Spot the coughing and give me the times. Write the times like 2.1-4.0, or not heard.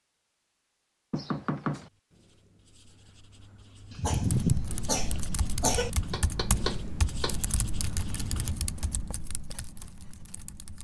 3.9-5.9.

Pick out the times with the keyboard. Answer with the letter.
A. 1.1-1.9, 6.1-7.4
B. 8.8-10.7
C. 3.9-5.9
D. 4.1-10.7
D.